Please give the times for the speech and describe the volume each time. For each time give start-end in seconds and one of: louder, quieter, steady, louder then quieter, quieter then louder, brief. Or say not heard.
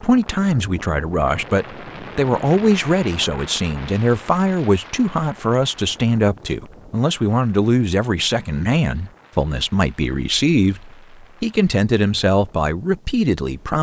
0.0-13.7 steady.